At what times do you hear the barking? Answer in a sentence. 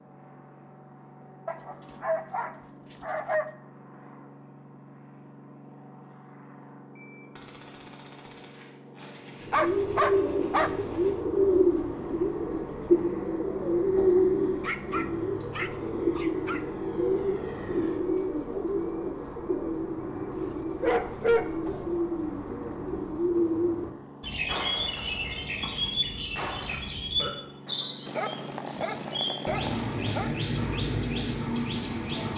The barking can be heard from 1.4 to 3.5 s, from 9.0 to 10.7 s, from 14.2 to 16.6 s, from 20.3 to 21.9 s and from 28.1 to 30.4 s.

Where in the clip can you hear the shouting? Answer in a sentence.
The shouting can't be heard in this clip.